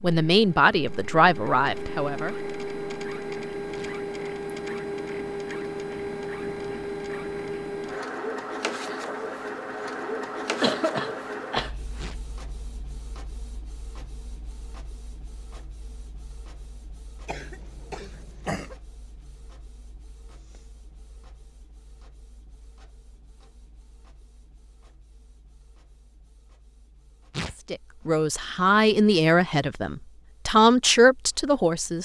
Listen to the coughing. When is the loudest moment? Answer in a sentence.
The volume of the coughing peaks at 11 seconds.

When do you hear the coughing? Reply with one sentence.
You can hear the coughing from 10.4 to 12.1 s and from 17.2 to 18.8 s.